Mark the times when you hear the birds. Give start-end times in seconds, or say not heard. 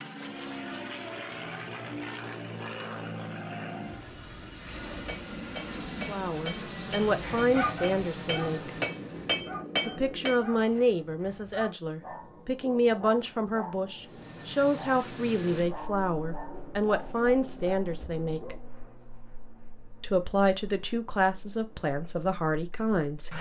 not heard.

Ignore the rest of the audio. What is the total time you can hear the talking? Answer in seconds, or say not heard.
15 s.